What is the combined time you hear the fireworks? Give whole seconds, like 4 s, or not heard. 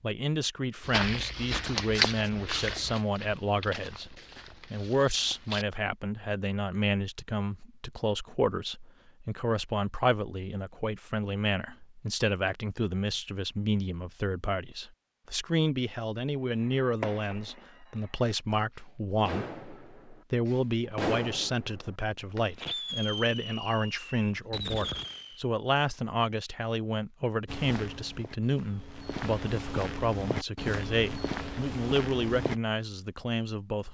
9 s.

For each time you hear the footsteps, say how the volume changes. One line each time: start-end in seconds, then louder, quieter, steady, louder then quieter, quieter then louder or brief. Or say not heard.
0.8-5.7 quieter
27.4-32.5 louder.